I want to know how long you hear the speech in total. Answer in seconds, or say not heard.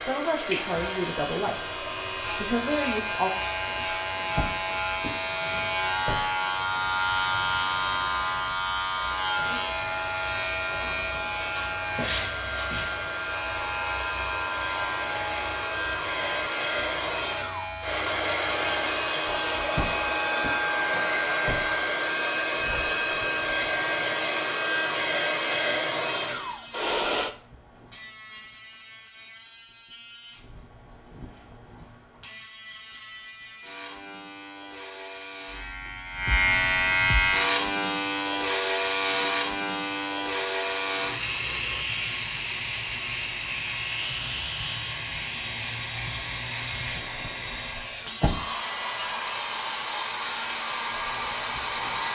3 s.